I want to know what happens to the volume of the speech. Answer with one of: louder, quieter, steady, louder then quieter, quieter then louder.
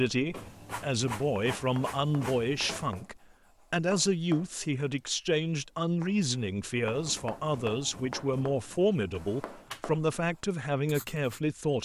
steady.